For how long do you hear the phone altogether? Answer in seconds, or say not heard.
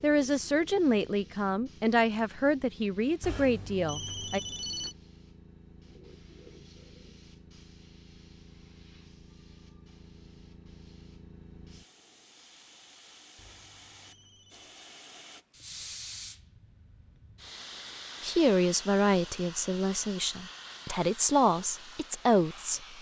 3 s.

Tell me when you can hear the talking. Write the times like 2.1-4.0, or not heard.
0.0-4.4, 18.2-22.8.